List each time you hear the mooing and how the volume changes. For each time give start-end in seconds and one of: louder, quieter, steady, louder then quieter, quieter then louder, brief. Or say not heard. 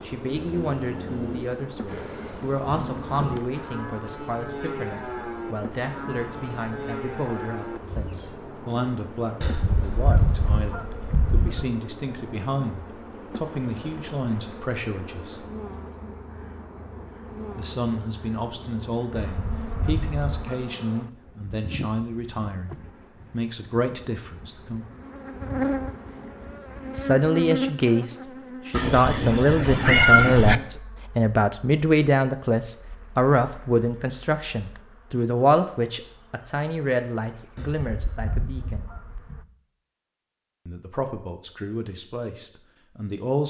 0.0-8.3 steady.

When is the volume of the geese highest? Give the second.
10 s.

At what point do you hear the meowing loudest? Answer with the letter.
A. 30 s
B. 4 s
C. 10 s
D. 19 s
A.